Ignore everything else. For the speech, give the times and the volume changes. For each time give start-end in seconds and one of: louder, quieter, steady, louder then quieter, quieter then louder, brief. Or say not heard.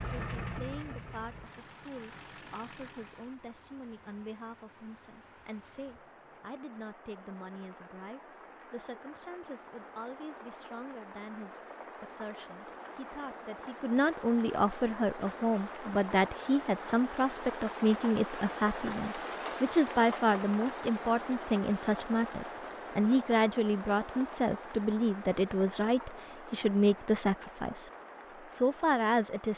0.1-29.5 louder.